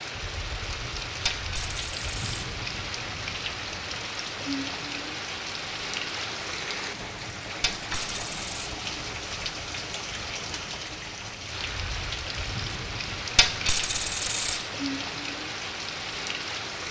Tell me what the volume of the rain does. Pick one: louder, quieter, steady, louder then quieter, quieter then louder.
steady.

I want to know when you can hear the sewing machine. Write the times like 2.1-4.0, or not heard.
not heard.